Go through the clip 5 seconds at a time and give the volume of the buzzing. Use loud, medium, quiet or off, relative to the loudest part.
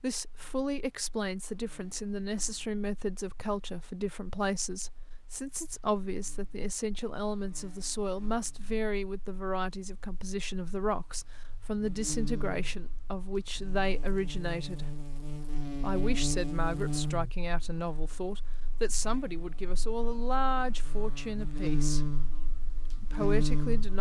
quiet, quiet, medium, loud, loud.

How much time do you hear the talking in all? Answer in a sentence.
You can hear the talking for 22 seconds altogether.